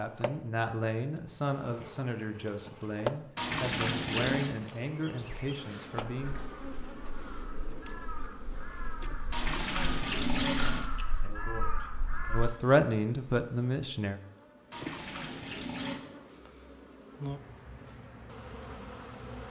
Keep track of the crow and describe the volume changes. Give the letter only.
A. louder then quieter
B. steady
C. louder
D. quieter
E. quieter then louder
C.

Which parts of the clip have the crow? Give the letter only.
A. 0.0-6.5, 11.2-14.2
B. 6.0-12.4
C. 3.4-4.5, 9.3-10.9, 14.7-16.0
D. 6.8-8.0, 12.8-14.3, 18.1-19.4
B.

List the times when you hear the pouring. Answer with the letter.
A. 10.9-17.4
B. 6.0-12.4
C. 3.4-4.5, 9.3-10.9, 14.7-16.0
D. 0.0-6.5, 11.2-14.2
C.